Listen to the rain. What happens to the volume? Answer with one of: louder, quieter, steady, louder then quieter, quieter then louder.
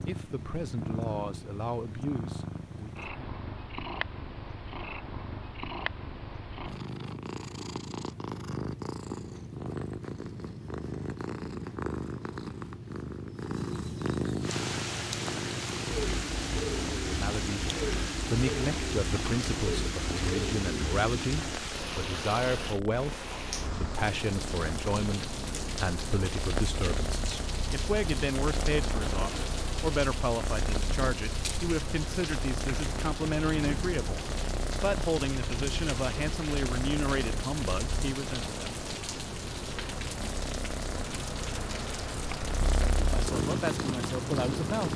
steady.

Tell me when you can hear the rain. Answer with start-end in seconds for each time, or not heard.
14.4-44.9.